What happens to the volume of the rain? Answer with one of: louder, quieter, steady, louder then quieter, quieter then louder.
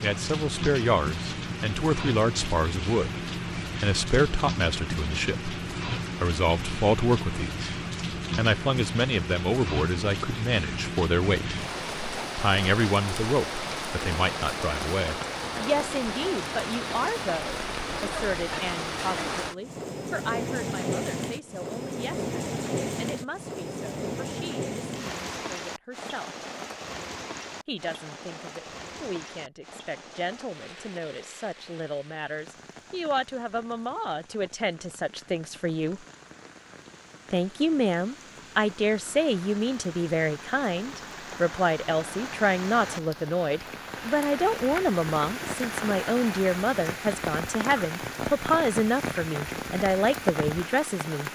quieter then louder.